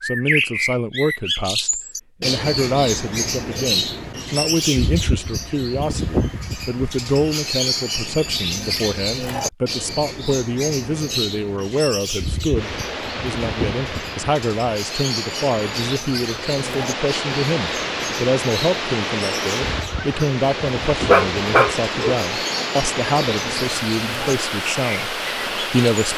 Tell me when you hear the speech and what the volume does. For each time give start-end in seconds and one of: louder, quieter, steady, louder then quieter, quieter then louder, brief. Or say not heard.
0.0-26.1 steady.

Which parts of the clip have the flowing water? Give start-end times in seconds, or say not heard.
12.5-26.1.